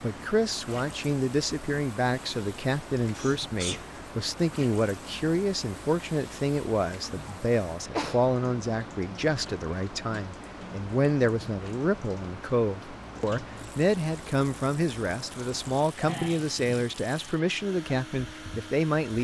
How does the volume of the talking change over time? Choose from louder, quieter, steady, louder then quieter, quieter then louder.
steady.